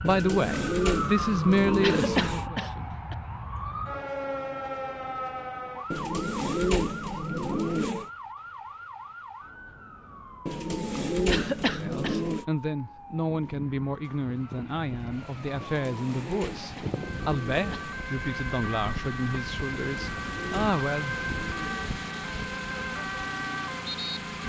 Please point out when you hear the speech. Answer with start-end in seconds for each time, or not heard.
0.0-3.0, 11.8-21.1.